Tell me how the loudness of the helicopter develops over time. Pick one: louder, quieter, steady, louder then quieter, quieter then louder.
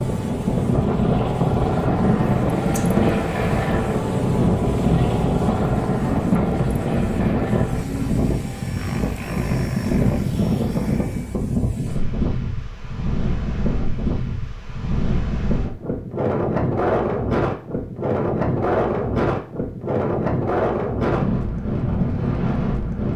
quieter.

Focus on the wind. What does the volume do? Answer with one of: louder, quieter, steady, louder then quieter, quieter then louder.
steady.